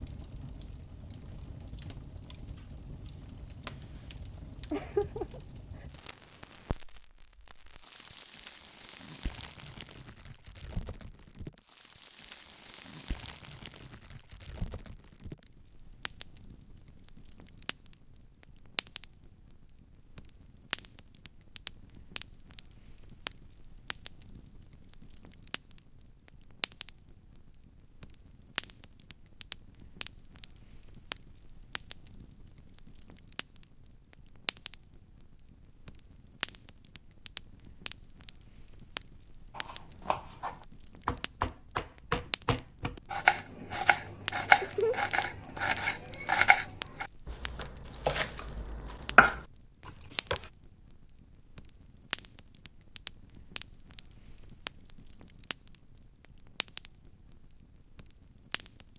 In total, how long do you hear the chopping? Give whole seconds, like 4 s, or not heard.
11 s.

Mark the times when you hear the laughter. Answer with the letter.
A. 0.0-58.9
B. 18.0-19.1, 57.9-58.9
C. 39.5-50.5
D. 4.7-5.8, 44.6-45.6
D.